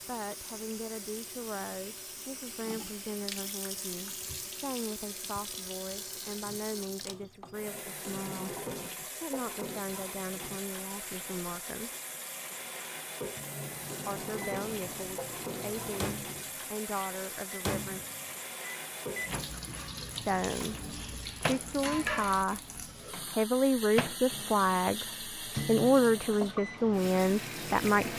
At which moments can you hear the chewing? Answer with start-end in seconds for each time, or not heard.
not heard.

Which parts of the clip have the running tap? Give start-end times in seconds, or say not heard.
0.0-28.1.